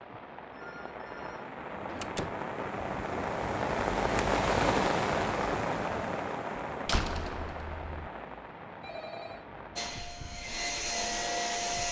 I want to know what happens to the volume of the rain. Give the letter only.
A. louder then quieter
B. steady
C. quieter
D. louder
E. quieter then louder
A.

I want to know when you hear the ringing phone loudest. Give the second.
9 s.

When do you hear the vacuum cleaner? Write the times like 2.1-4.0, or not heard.
9.8-11.8.